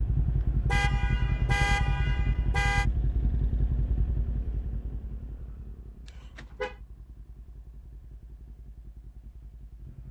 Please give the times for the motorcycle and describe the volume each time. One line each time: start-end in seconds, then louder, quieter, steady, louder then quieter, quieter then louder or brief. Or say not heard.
0.0-10.0 quieter.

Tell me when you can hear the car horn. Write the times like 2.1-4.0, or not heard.
0.7-2.9, 6.0-6.8.